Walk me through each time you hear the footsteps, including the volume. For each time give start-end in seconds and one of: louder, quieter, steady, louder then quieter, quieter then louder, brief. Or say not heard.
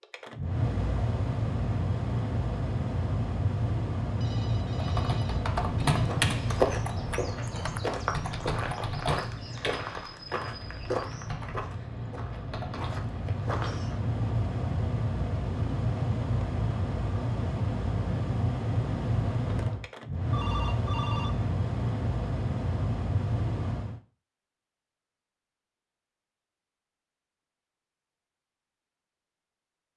5.9-13.9 quieter.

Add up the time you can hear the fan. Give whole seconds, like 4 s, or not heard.
24 s.